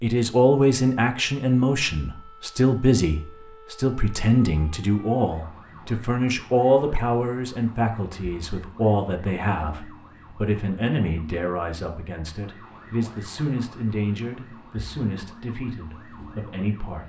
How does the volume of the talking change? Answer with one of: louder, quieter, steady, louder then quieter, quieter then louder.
quieter.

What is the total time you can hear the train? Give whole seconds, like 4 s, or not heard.
not heard.